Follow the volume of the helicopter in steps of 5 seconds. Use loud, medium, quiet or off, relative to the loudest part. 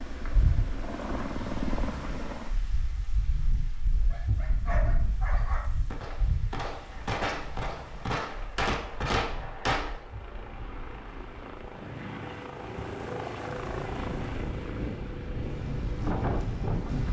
loud, quiet, loud, medium.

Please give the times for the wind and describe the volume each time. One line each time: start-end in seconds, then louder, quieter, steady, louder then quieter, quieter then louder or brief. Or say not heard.
0.0-17.0 quieter then louder.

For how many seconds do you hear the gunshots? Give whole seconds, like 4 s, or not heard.
4 s.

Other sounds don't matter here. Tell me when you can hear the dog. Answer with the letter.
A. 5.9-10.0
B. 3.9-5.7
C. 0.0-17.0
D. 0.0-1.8
B.